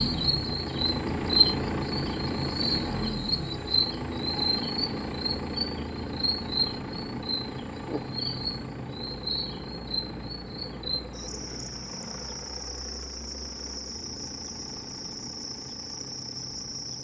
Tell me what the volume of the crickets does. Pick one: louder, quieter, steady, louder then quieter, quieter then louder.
quieter.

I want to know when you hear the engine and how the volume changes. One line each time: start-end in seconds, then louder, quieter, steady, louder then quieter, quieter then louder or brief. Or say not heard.
0.0-17.0 quieter.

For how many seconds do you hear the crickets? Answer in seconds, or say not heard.
17 s.